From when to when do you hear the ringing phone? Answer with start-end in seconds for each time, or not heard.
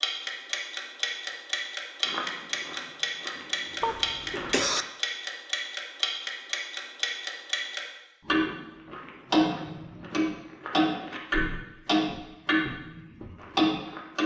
not heard.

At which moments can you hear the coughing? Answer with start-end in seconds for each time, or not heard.
3.8-4.8.